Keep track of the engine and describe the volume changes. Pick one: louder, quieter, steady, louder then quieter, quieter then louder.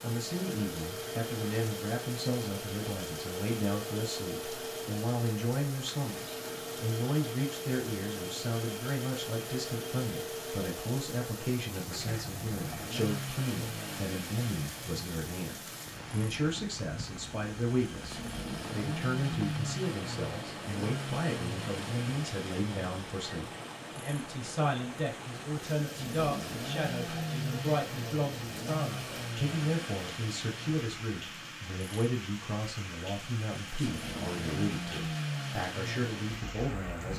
steady.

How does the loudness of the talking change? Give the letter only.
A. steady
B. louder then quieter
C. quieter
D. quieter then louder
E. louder
A.